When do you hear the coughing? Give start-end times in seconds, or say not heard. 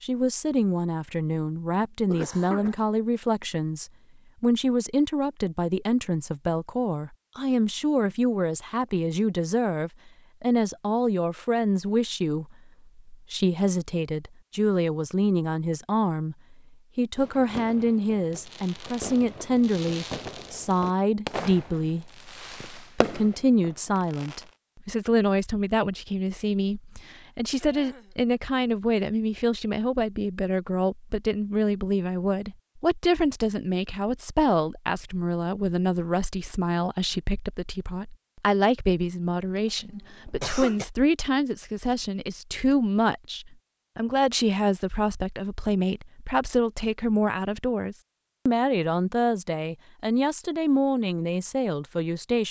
2.1-2.8, 27.6-28.1, 39.5-40.9.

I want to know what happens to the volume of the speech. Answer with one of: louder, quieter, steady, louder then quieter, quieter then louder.
steady.